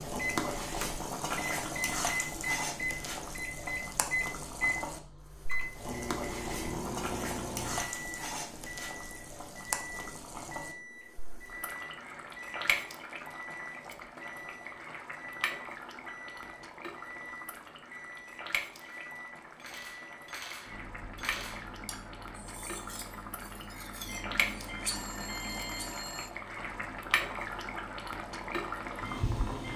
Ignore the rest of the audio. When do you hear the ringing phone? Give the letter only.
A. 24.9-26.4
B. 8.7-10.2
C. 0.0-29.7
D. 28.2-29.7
A.